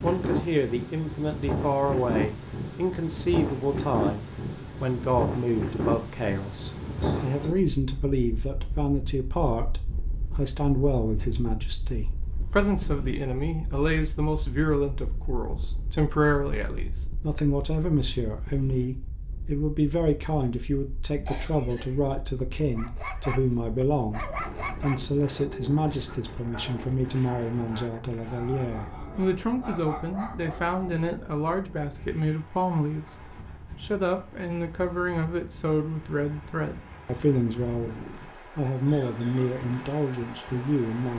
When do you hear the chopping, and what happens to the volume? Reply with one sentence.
The chopping can't be heard in this clip.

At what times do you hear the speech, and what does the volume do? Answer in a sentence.
The speech can be heard from 0.0 to 41.1 s, at a steady volume.